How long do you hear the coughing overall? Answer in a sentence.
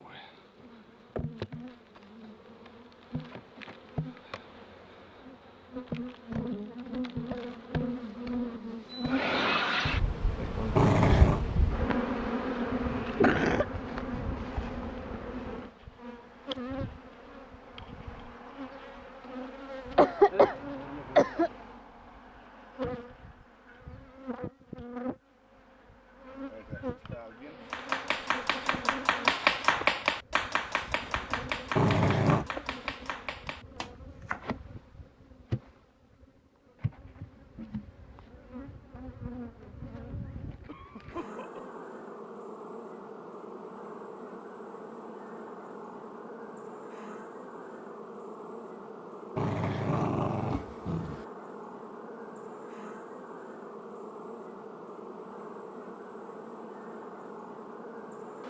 The coughing can be heard for 3 seconds in total.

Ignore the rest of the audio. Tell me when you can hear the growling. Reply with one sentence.
You can hear the growling from 10.8 to 11.4 s, from 31.8 to 32.5 s and from 49.4 to 51.2 s.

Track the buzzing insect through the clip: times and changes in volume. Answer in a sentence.
The buzzing insect can be heard from 0.0 to 58.4 s, getting quieter.